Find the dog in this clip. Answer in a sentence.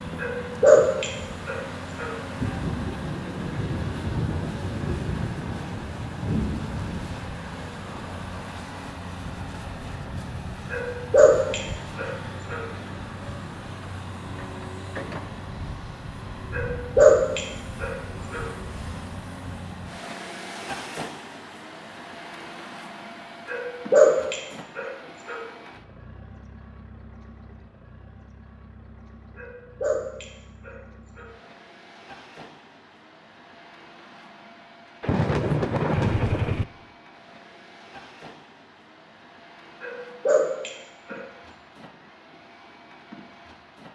The dog can be heard from 0.2 to 2.1 s, from 10.7 to 12.6 s, from 16.5 to 18.4 s, from 23.4 to 25.4 s, from 29.4 to 31.3 s and from 39.8 to 41.2 s.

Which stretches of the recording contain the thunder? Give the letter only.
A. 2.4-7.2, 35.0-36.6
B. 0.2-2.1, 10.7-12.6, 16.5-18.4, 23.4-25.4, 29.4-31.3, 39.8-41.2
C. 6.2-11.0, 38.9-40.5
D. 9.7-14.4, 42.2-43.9
A.